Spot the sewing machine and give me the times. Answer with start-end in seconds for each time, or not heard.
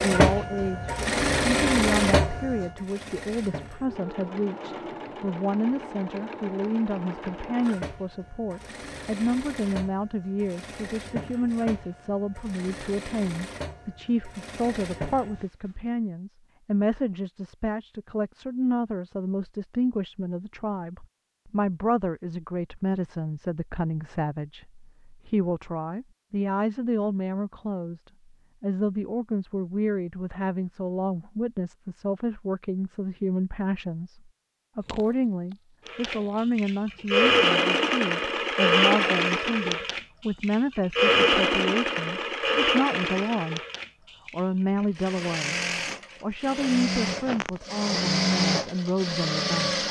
0.0-15.9, 35.9-49.8.